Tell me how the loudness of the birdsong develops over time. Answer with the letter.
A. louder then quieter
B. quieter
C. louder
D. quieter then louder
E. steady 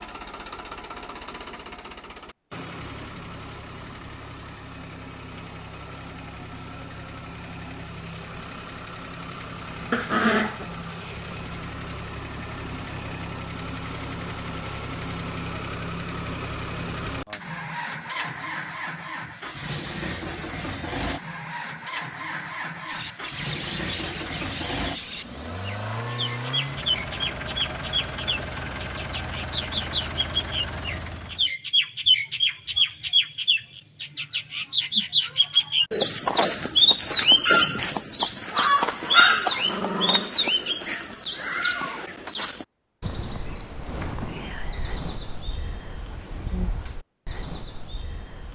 A.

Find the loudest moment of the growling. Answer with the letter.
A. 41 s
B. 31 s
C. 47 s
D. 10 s
D.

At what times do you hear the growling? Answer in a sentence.
The growling can be heard from 9.9 to 10.7 s and from 39.6 to 40.4 s.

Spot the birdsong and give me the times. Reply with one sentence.
The birdsong can be heard from 22.9 to 48.5 s.